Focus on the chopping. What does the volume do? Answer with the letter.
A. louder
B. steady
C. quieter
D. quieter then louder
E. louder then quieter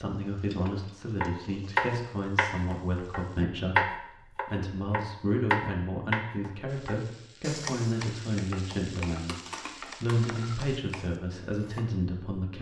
C.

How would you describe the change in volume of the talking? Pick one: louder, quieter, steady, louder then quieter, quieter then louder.
steady.